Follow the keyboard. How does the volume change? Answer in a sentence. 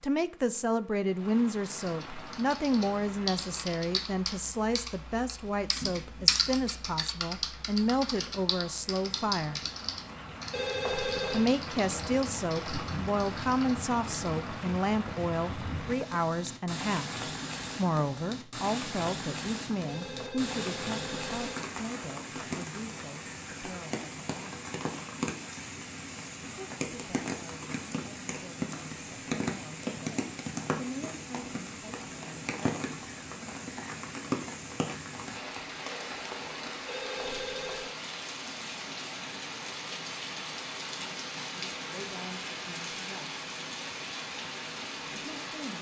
The volume of the keyboard goes up, then down.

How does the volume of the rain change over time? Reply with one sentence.
The loudness of the rain goes up.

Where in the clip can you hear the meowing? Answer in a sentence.
You can't hear the meowing here.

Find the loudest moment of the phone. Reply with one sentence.
The loudest moment of the phone is at 11 seconds.